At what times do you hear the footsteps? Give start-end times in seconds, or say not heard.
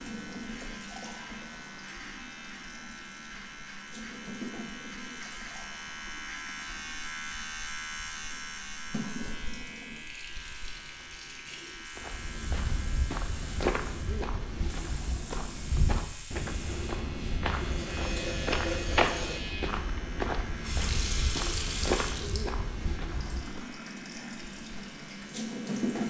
11.9-23.6.